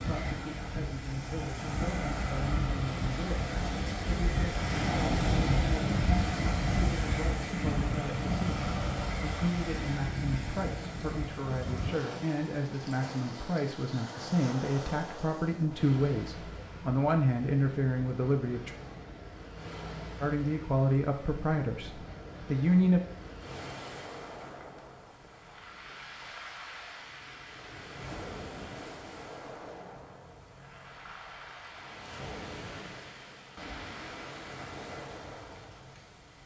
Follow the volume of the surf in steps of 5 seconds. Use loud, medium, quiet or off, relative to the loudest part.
loud, loud, medium, quiet, quiet, quiet, quiet, quiet.